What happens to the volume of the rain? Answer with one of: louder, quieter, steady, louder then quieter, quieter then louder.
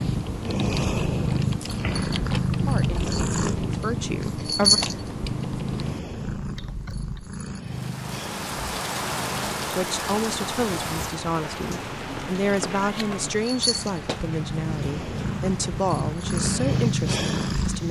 quieter.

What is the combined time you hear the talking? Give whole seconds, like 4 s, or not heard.
10 s.